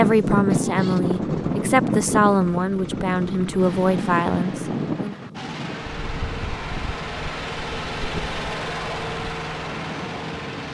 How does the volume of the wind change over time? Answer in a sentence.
The loudness of the wind goes down.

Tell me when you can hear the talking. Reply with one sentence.
The talking can be heard from 0.0 to 5.2 s.